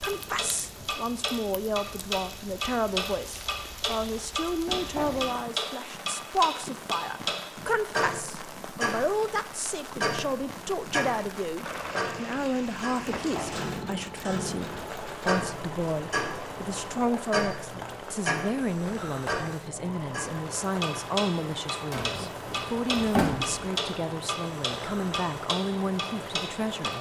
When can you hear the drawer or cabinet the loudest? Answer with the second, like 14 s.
23 s.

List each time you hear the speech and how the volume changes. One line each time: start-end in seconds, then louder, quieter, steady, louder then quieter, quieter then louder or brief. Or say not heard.
0.0-26.9 steady.